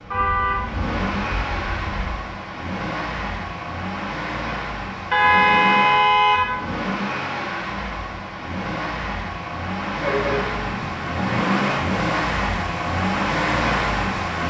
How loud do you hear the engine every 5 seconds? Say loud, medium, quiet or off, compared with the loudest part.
medium, medium, loud.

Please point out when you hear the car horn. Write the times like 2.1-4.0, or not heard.
0.1-2.1, 5.1-6.6, 10.0-11.3.